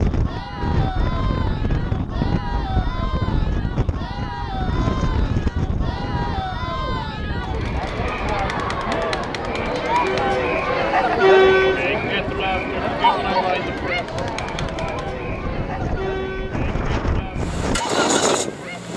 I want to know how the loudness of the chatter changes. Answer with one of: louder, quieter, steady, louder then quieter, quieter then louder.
louder then quieter.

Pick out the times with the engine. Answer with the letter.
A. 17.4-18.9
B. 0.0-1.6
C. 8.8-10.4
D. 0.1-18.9
A.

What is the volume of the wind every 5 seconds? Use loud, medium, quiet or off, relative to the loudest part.
loud, loud, medium, loud.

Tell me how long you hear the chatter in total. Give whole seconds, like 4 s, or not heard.
19 s.